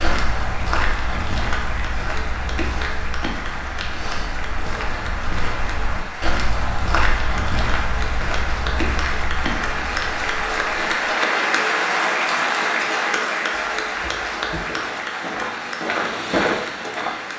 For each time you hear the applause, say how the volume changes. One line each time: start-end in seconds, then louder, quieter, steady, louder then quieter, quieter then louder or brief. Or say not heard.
0.1-17.3 louder then quieter.